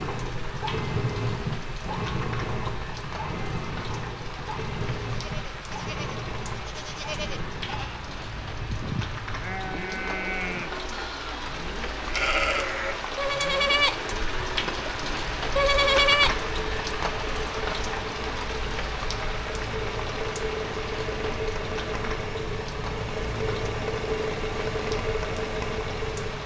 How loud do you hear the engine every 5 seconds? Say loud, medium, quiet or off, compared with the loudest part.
loud, medium, medium, medium, loud, loud.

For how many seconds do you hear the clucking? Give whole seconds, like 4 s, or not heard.
not heard.